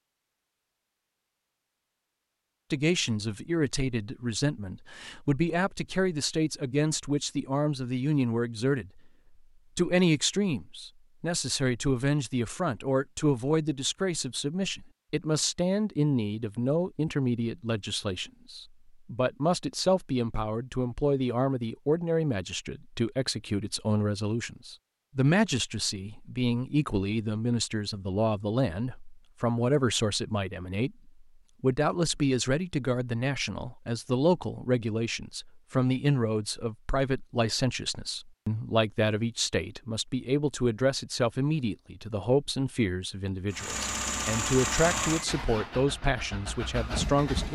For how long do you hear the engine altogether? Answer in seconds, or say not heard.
4 s.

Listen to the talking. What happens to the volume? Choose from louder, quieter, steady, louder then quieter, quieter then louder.
steady.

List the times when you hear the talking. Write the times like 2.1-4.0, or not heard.
2.7-9.0, 9.8-47.4.